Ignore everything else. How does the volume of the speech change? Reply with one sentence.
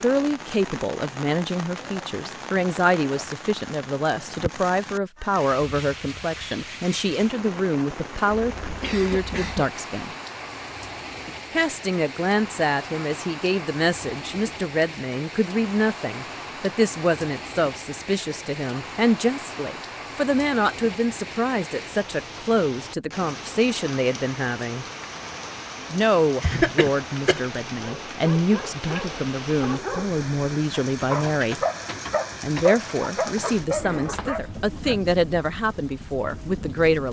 The volume of the speech stays about the same.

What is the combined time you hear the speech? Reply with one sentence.
You can hear the speech for 34 seconds altogether.